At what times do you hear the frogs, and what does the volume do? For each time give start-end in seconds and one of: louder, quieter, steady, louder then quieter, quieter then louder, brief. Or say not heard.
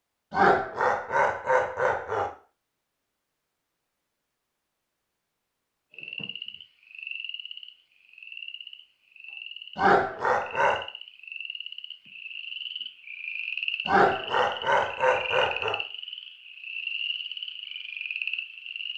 5.9-18.9 louder.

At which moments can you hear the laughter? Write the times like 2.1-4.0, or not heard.
0.3-2.3, 9.8-10.8, 13.8-15.8.